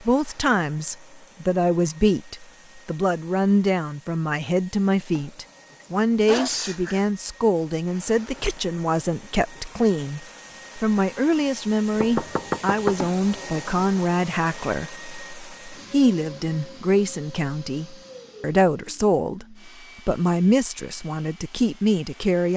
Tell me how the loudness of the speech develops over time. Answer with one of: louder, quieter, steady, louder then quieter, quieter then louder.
steady.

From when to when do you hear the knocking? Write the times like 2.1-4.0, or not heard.
11.9-13.5.